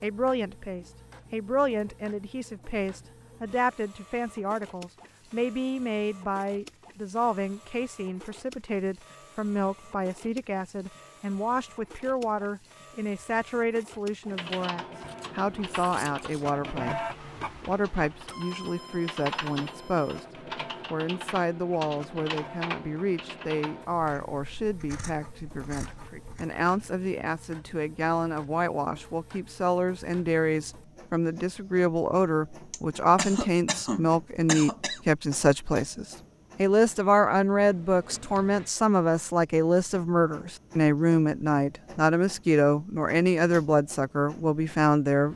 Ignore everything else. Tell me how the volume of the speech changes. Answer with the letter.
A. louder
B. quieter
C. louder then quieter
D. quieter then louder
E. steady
A.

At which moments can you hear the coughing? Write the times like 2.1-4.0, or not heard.
32.7-35.0.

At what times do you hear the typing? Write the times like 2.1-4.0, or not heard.
14.2-23.9.